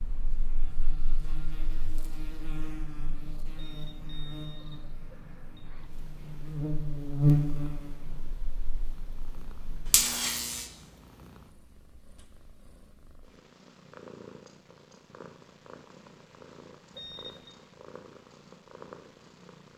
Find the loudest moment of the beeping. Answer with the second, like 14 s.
17 s.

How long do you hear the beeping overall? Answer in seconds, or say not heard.
3 s.